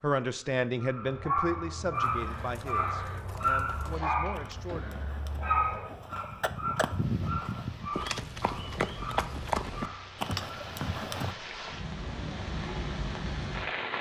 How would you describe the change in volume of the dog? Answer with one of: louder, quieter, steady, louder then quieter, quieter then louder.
quieter.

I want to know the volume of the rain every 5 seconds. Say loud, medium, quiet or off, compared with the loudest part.
off, quiet, loud.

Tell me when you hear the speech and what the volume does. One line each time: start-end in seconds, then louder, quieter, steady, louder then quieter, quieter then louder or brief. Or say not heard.
0.0-5.1 quieter.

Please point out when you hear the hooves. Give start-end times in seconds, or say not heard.
1.9-11.3.